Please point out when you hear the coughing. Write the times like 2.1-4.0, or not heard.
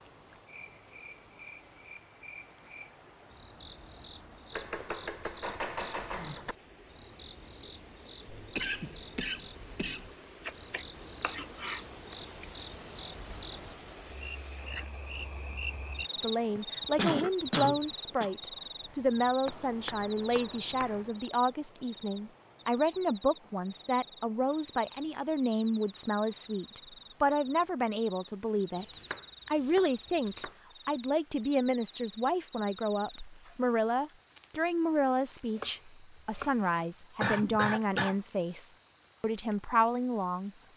8.2-10.1, 16.6-18.3, 37.2-38.1.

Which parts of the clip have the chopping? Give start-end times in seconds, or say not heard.
4.5-6.5, 10.4-12.2, 19.4-21.2, 28.8-30.6, 35.5-36.6.